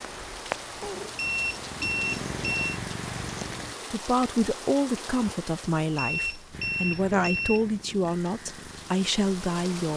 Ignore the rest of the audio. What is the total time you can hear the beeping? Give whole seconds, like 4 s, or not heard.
3 s.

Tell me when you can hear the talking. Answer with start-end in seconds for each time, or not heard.
3.9-9.9.